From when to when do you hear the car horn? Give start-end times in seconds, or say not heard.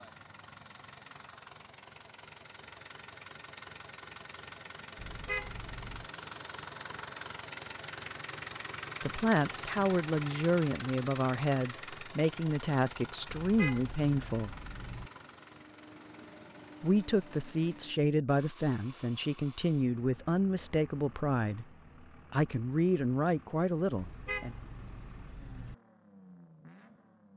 5.0-6.1, 13.2-15.1, 23.9-25.8.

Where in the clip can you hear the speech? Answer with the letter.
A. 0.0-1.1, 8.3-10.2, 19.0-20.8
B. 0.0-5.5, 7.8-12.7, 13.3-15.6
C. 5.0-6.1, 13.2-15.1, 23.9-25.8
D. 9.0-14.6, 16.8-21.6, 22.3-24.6
D.